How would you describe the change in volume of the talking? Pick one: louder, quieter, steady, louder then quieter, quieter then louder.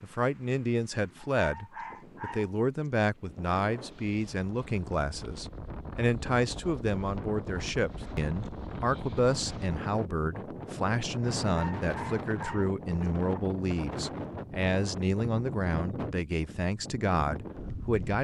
steady.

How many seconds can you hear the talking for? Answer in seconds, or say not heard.
18 s.